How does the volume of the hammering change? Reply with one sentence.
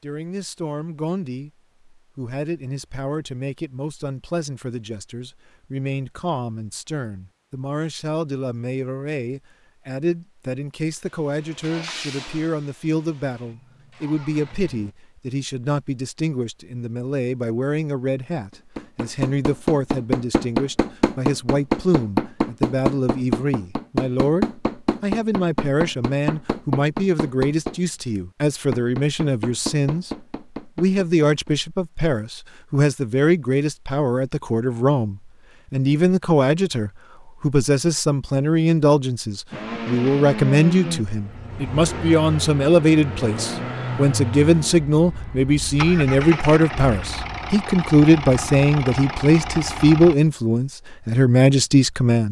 The volume of the hammering goes down.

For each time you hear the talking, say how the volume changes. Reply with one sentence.
You can hear the talking from 0.0 to 52.2 s, getting louder.